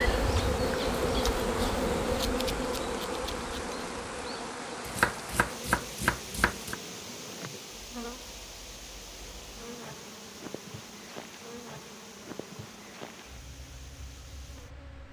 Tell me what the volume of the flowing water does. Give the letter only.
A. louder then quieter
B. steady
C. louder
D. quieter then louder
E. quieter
E.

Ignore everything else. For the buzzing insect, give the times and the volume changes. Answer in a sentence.
You can hear the buzzing insect from 0.0 to 15.0 s, getting quieter.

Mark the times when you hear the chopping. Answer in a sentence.
You can hear the chopping from 4.8 to 6.8 s.